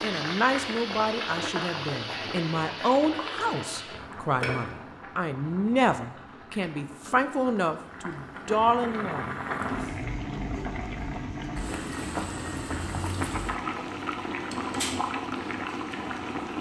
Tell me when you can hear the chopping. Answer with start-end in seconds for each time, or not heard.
not heard.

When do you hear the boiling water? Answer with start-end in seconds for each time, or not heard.
0.0-16.5.